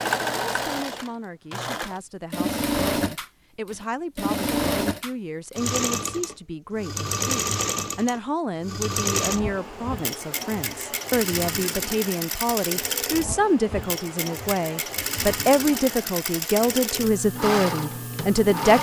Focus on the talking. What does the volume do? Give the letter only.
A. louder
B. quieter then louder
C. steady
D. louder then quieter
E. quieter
A.